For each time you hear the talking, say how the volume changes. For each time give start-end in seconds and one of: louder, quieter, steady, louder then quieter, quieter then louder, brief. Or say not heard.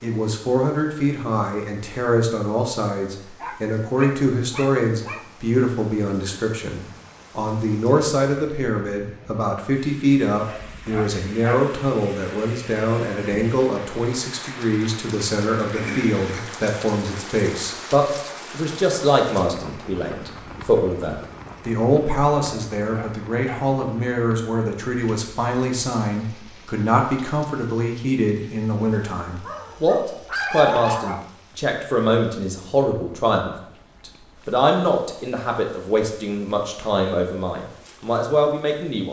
0.0-39.0 steady.